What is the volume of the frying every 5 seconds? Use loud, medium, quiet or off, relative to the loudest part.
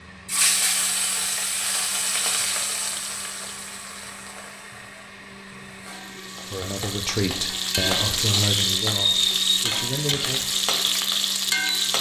medium, loud, loud.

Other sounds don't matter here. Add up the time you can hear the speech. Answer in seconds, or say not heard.
4 s.